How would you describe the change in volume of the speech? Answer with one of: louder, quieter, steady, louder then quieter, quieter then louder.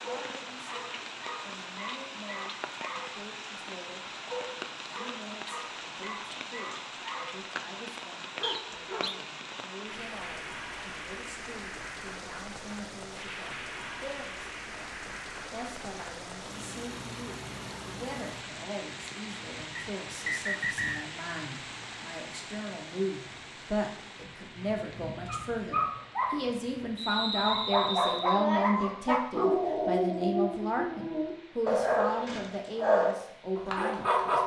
louder.